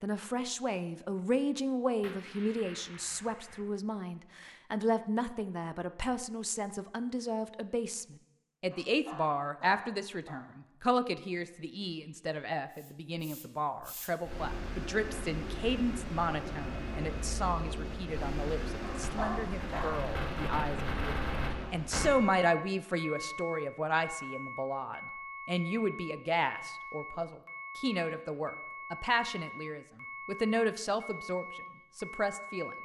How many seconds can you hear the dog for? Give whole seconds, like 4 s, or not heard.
3 s.